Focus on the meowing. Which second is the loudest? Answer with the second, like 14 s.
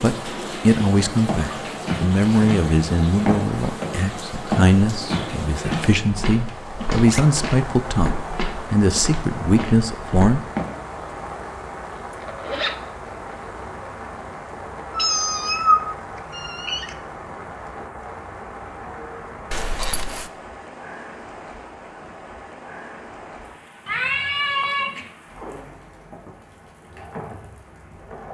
16 s.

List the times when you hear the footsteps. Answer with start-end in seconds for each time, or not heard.
1.2-10.7.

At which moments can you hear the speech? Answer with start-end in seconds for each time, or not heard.
0.0-10.4.